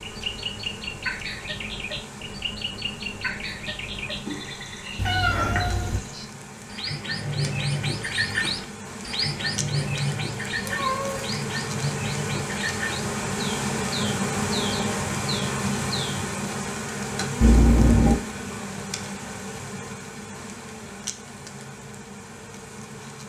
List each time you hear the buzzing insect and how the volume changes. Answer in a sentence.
The buzzing insect can be heard from 0.0 to 23.2 s, getting louder then quieter.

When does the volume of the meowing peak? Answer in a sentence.
The loudest moment of the meowing is at 18 seconds.